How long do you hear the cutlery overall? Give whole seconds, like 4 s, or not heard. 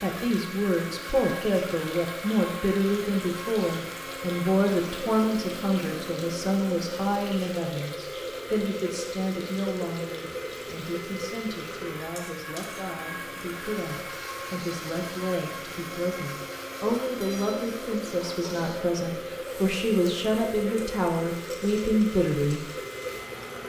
not heard.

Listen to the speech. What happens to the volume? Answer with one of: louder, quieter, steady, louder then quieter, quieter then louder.
quieter then louder.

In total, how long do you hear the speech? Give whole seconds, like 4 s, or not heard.
23 s.